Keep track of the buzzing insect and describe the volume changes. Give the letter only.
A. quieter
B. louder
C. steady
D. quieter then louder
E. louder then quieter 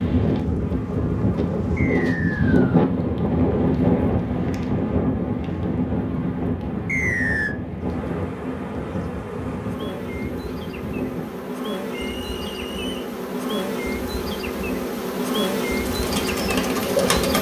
B.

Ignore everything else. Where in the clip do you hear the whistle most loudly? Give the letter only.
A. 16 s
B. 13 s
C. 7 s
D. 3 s
C.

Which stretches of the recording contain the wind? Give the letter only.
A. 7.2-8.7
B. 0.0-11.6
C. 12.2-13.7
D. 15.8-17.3
B.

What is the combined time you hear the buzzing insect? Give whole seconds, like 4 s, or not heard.
17 s.